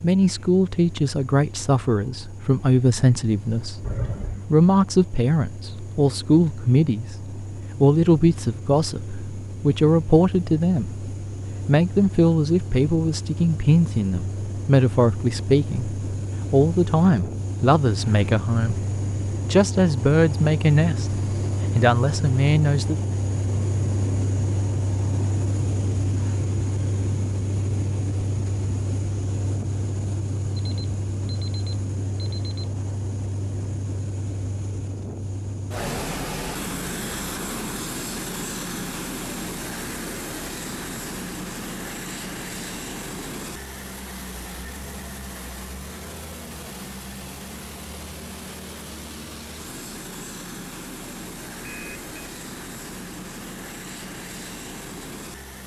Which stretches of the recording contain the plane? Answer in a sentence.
The plane can be heard from 0.0 to 55.6 s.